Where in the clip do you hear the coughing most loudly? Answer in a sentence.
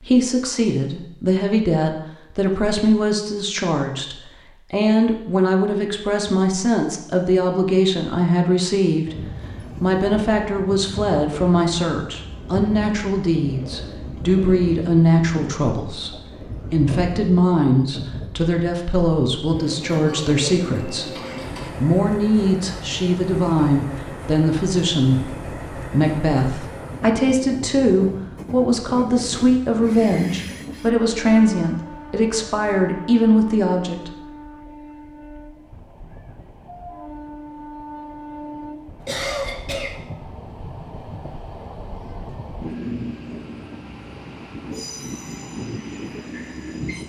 The loudest moment of the coughing is at 39 seconds.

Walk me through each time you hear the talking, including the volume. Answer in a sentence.
You can hear the talking from 0.0 to 9.2 s, at a steady volume; and from 9.8 to 34.1 s, at a steady volume.